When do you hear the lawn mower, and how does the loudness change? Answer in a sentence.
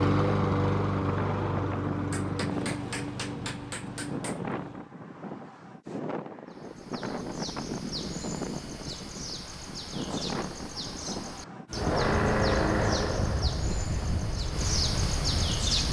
The lawn mower can be heard from 0.0 to 4.9 s, getting quieter; and from 11.7 to 15.8 s, getting quieter.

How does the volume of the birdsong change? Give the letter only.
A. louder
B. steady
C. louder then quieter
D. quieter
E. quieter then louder
A.